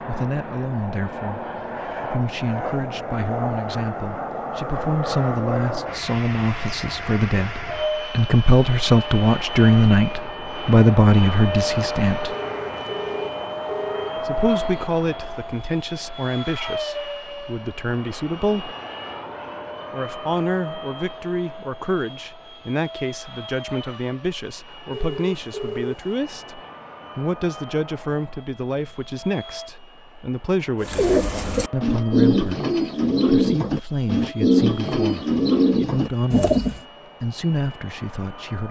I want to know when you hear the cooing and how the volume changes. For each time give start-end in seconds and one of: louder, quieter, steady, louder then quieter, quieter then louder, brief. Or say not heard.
30.8-36.8 steady.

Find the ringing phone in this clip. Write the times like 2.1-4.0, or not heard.
12.2-14.9, 24.9-25.9.